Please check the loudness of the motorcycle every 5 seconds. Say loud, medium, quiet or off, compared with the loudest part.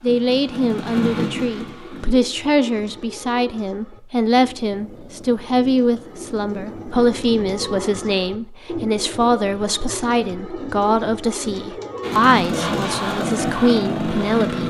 medium, off, loud.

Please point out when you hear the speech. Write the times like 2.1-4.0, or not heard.
0.0-14.6.